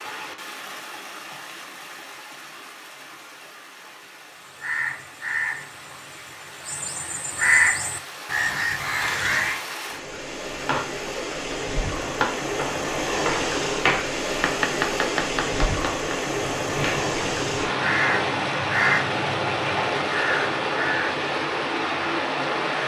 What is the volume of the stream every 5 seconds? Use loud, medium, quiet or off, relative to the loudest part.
quiet, quiet, loud, loud, loud.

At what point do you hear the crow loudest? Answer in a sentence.
The volume of the crow peaks at 8 seconds.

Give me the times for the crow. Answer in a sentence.
The crow can be heard from 4.3 to 9.6 s and from 16.4 to 21.1 s.